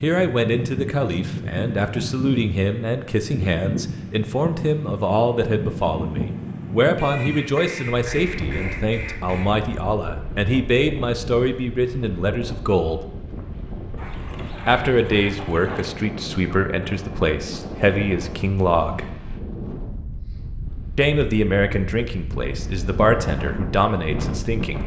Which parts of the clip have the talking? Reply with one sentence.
You can hear the talking from 0.0 to 13.0 s, from 14.7 to 19.1 s and from 20.9 to 24.8 s.